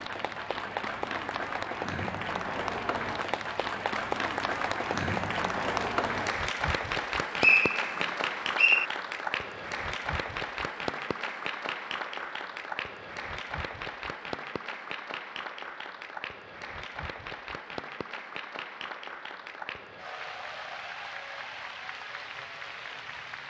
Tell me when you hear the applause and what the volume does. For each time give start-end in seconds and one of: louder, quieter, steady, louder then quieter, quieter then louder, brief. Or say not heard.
0.0-23.4 quieter.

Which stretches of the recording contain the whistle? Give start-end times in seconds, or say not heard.
7.4-8.8.